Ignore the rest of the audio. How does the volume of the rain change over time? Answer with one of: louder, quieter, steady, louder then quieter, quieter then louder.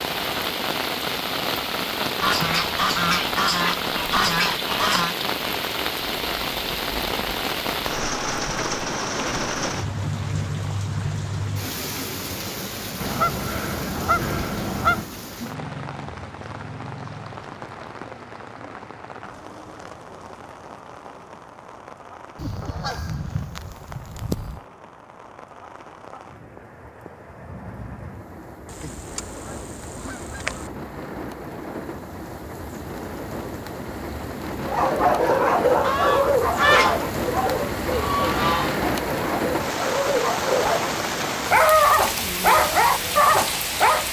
quieter then louder.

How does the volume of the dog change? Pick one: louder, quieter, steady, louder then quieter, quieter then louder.
quieter then louder.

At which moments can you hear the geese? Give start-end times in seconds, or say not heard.
2.2-5.2, 13.0-15.1, 22.4-24.6, 28.7-30.7, 35.8-38.8.